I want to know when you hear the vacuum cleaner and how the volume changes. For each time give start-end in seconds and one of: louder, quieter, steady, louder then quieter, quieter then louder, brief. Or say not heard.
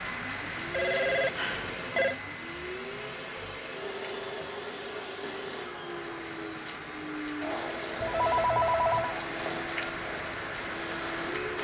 0.0-11.5 steady.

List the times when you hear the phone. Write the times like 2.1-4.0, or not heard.
0.7-2.1, 8.0-9.2.